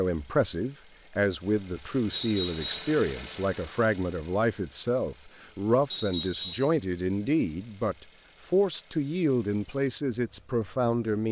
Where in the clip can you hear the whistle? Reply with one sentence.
You can hear the whistle from 2.1 to 3.0 s and from 5.9 to 6.8 s.